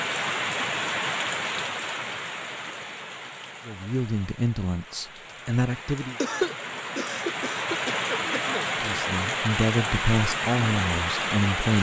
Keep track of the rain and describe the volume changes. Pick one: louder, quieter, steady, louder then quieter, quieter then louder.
quieter then louder.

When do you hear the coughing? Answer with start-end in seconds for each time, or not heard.
6.2-8.7.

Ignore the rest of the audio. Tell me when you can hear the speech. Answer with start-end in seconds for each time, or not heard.
3.6-6.2, 8.8-11.7.